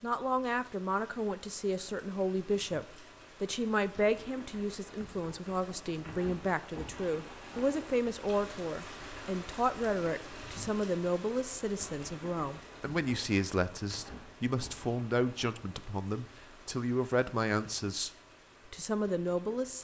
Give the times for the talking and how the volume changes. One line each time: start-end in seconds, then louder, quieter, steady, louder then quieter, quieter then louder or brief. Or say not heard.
0.0-18.1 steady
18.7-19.7 brief.